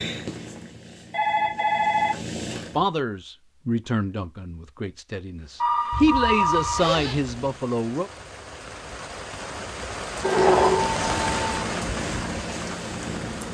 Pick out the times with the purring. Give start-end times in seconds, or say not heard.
0.0-2.9, 10.1-13.4.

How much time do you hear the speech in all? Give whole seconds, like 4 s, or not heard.
5 s.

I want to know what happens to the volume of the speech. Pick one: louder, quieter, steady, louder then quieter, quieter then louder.
quieter then louder.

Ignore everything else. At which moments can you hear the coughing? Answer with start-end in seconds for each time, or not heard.
not heard.